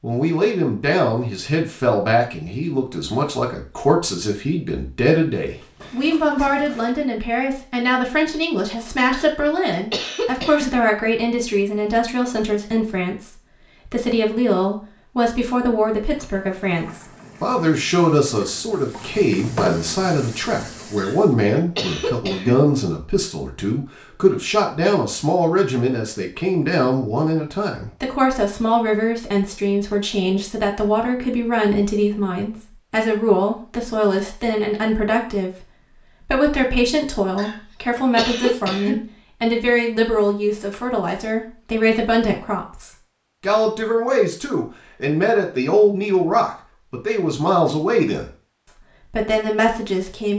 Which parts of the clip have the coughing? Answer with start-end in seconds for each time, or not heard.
9.1-10.7, 20.9-22.6, 37.4-39.0.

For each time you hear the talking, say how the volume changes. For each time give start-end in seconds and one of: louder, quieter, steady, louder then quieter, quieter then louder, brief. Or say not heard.
0.0-48.3 steady
49.0-50.3 brief.